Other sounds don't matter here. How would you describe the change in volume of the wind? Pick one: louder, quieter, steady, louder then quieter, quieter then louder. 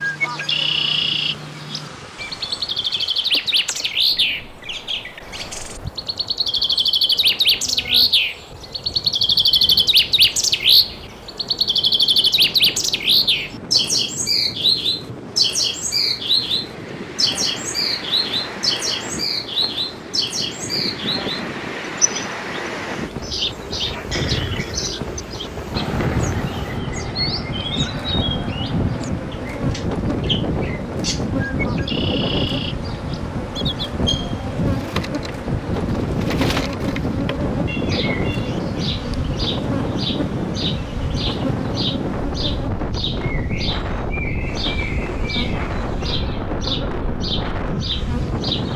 louder.